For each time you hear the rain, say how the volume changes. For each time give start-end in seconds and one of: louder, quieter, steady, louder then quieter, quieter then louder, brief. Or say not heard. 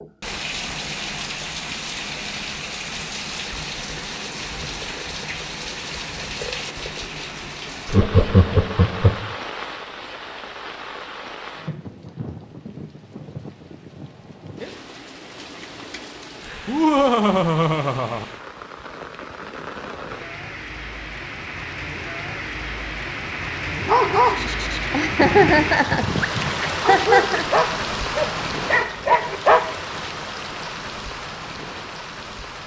0.0-32.6 quieter then louder.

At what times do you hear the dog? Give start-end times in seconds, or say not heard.
23.8-29.8.